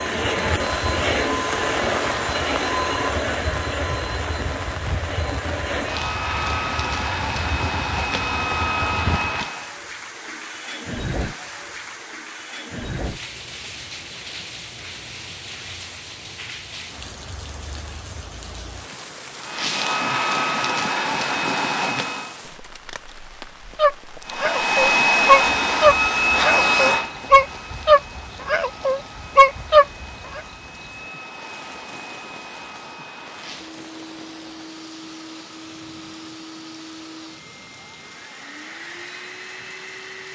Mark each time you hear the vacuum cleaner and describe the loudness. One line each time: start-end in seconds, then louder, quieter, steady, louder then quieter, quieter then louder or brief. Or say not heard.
0.0-9.8 quieter then louder
19.4-22.4 brief
24.2-40.3 quieter.